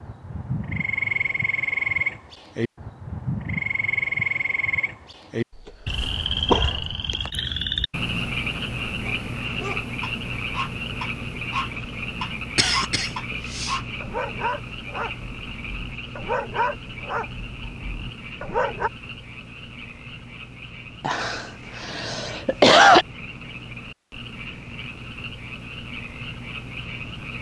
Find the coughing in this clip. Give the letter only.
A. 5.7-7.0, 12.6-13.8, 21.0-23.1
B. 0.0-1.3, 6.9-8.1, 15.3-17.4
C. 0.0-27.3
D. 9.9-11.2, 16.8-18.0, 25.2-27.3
A.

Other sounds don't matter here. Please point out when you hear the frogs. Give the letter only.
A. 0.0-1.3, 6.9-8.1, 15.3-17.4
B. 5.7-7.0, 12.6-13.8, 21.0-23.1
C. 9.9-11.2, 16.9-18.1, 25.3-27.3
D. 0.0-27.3
D.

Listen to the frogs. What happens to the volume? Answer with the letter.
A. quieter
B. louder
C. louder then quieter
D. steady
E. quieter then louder
A.